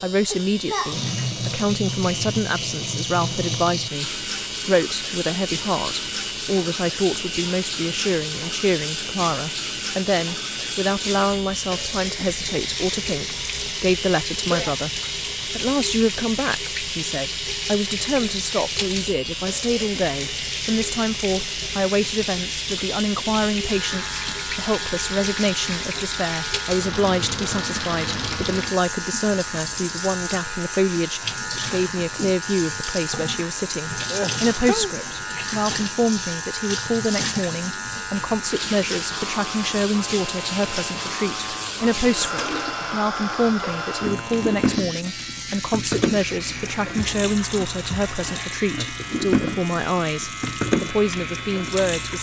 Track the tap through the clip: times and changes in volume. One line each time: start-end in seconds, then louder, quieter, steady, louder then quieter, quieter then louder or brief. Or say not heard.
0.1-52.1 steady.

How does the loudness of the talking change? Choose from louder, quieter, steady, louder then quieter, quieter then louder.
steady.